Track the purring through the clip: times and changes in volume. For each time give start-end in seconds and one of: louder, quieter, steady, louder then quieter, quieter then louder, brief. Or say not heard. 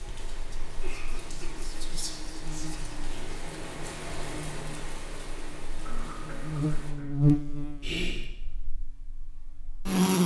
not heard.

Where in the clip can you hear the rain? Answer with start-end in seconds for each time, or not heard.
0.0-7.0.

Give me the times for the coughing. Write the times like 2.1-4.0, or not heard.
0.8-1.9, 5.8-7.2.